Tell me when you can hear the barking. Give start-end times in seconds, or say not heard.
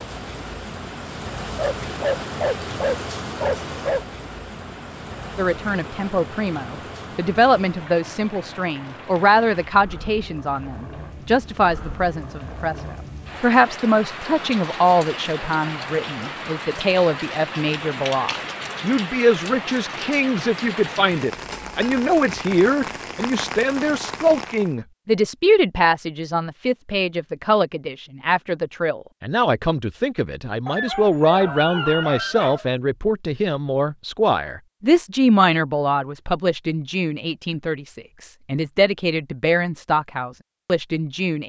1.6-4.0, 30.6-32.6.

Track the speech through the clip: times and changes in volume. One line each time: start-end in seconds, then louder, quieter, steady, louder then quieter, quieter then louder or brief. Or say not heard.
5.3-41.4 steady.